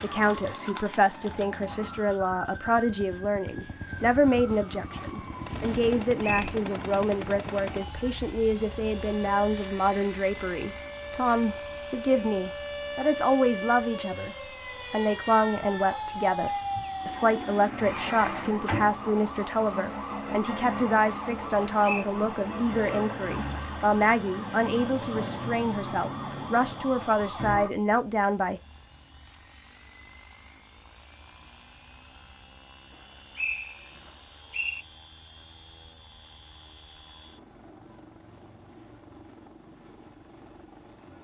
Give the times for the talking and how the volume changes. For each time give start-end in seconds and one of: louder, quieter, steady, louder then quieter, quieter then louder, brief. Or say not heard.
0.0-28.6 steady.